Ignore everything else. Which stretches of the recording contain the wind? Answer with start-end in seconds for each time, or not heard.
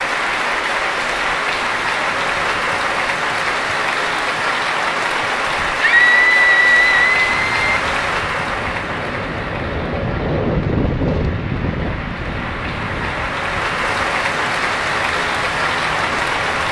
7.1-16.6.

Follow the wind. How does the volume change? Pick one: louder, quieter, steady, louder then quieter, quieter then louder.
louder then quieter.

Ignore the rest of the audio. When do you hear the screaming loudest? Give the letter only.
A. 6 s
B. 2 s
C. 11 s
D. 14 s
A.